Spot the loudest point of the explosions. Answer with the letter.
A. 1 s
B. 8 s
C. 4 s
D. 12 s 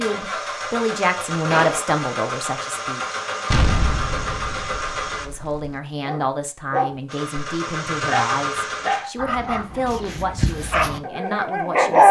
C.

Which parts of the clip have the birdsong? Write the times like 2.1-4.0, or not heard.
not heard.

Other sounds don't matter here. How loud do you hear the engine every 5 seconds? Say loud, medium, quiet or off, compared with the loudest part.
loud, loud, off.